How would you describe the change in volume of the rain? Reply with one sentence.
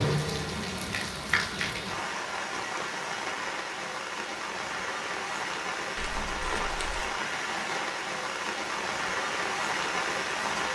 The volume of the rain stays about the same.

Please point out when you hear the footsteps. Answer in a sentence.
You can't hear the footsteps here.